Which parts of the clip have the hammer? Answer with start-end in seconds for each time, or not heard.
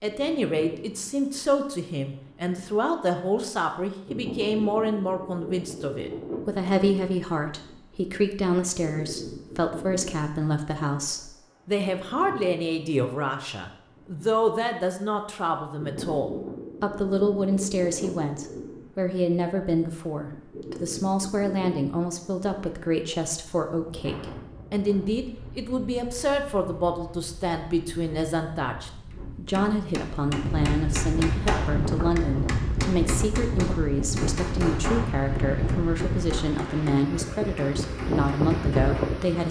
29.1-39.1.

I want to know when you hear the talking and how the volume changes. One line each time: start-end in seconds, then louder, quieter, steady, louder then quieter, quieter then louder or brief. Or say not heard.
0.0-39.4 steady.